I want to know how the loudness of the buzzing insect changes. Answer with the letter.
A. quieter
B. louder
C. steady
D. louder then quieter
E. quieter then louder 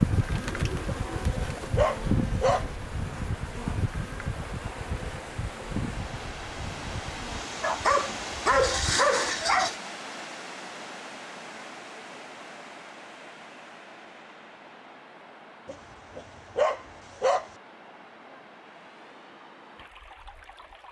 A.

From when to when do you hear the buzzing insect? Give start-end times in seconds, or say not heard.
0.0-9.8.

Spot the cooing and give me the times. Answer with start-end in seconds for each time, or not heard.
0.1-1.7.